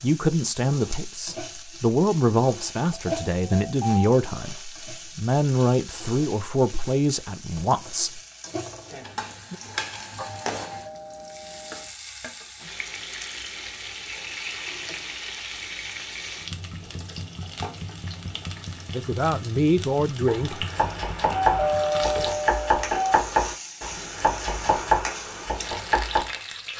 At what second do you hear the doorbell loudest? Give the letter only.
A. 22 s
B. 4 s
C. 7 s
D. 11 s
A.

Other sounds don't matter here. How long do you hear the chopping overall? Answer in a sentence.
The chopping can be heard for 6 seconds in total.